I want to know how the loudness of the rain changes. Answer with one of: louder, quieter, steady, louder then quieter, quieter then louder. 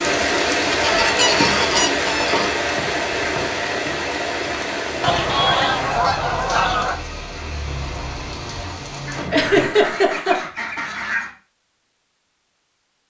quieter.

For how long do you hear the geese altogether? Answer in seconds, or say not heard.
6 s.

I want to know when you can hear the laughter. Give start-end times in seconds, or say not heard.
9.3-10.3.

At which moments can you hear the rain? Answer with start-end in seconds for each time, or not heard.
0.0-10.0.